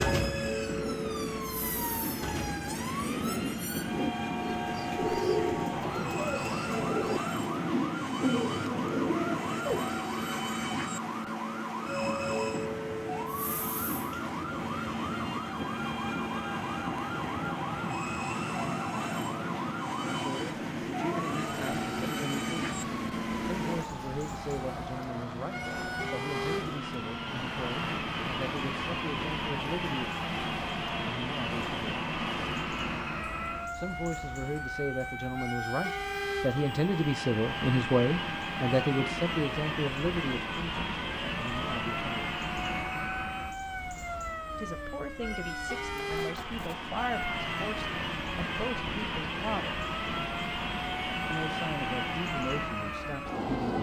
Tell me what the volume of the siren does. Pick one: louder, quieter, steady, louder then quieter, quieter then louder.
steady.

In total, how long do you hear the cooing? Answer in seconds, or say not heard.
10 s.